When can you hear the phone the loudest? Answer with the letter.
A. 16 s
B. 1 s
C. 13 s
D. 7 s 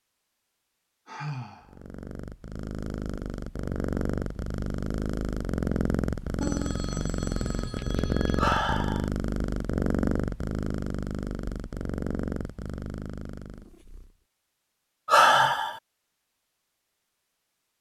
D.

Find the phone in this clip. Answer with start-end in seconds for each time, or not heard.
6.4-8.4.